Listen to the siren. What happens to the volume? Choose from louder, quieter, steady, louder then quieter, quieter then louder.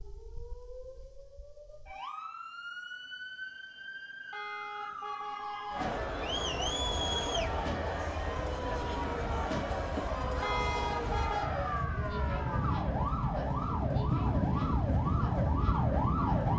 louder.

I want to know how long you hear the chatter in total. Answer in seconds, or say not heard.
11 s.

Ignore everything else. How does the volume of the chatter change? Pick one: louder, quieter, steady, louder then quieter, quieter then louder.
quieter.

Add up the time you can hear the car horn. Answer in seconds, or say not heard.
3 s.